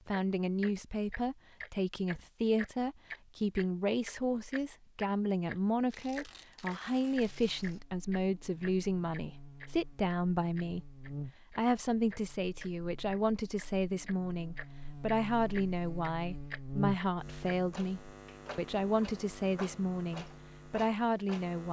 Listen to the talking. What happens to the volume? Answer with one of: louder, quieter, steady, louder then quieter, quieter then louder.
steady.